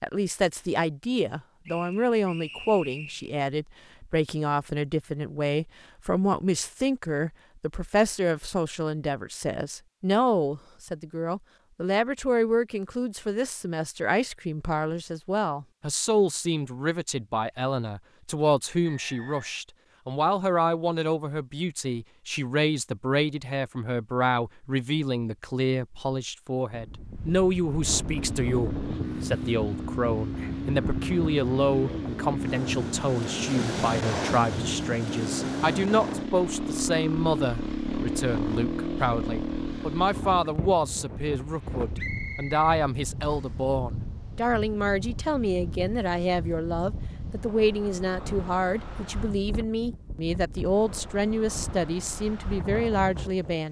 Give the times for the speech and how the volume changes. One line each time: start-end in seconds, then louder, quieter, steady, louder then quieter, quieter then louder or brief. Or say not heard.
0.0-53.6 steady.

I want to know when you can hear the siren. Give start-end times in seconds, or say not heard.
not heard.